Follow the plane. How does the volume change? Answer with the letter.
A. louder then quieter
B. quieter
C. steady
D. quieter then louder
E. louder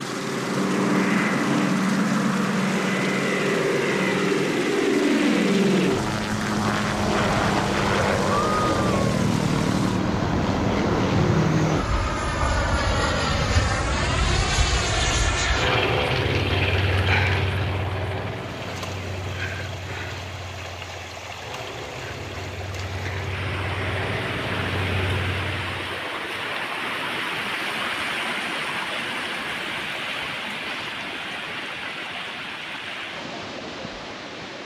B.